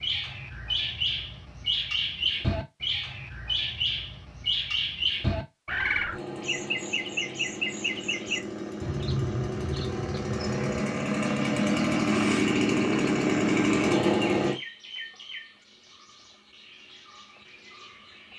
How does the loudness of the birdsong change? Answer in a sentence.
The loudness of the birdsong goes down.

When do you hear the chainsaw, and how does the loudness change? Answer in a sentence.
The chainsaw can be heard from 6.0 to 14.6 s, getting louder.